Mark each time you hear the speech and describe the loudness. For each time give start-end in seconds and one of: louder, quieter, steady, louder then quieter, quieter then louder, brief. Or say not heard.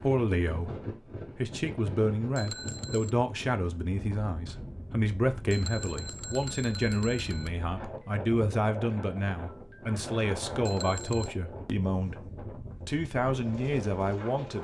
0.0-14.5 steady.